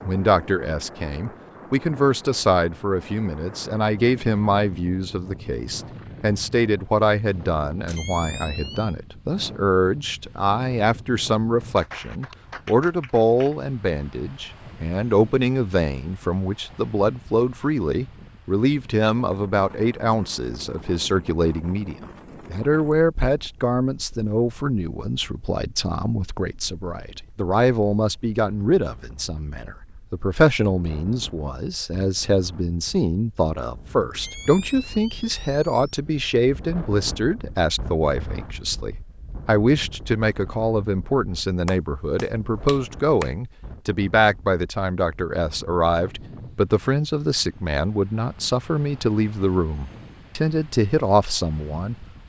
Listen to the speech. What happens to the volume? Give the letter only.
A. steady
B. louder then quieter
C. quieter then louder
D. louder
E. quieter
A.